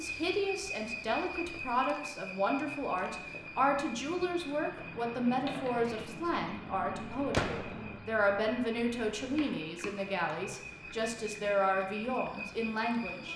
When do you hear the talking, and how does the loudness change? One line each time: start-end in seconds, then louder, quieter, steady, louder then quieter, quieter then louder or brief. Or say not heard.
0.0-13.3 steady.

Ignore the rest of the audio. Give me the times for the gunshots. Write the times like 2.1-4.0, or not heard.
7.3-8.0.